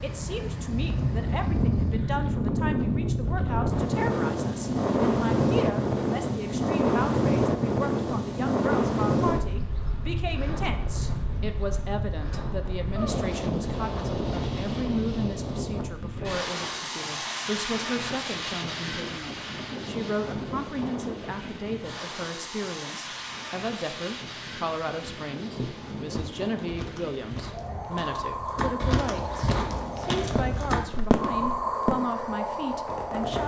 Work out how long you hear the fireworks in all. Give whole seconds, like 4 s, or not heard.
3 s.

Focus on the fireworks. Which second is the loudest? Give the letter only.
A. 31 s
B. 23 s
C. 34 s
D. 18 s
A.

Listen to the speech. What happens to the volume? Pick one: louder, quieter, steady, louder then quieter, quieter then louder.
steady.